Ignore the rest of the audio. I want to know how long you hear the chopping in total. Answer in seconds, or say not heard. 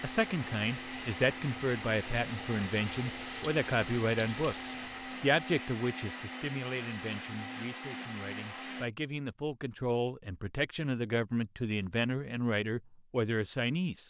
not heard.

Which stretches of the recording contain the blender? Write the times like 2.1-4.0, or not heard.
0.0-8.9.